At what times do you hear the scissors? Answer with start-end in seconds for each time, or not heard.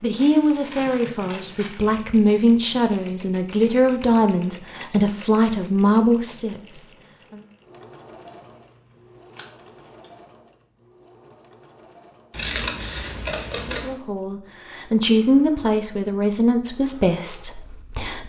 0.1-2.0, 8.3-10.2, 12.3-13.9.